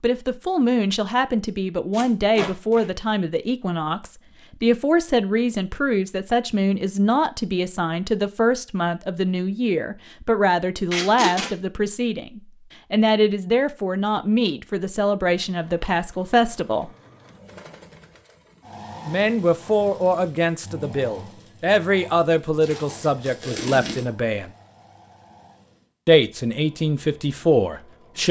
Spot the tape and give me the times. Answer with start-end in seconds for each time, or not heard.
1.9-2.9, 10.9-11.5, 22.6-24.1.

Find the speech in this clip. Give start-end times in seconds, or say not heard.
0.0-16.9, 19.1-24.5, 26.1-28.2.